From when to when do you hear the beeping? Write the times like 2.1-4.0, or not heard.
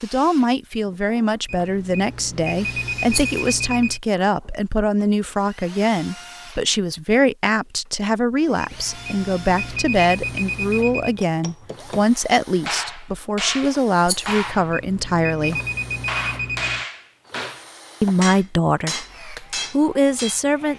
1.4-4.0, 8.6-11.2, 14.2-16.9.